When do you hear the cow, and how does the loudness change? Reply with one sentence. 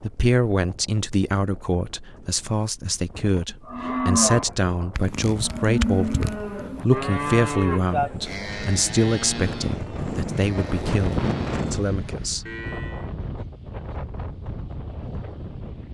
You can hear the cow from 3.6 to 13.1 s, getting quieter.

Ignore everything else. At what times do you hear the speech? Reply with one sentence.
You can hear the speech from 0.0 to 12.4 s.